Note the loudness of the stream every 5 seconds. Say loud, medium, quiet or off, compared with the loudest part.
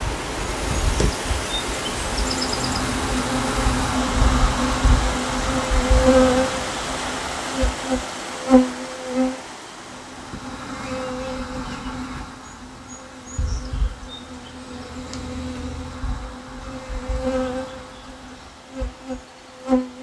loud, loud, quiet, quiet.